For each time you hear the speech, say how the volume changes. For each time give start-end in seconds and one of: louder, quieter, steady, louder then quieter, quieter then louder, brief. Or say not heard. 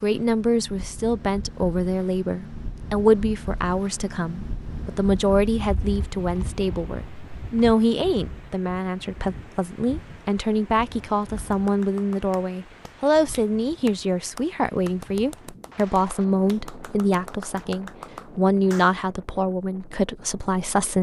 0.0-20.9 steady.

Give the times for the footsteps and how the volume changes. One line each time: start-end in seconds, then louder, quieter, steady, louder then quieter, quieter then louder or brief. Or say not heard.
not heard.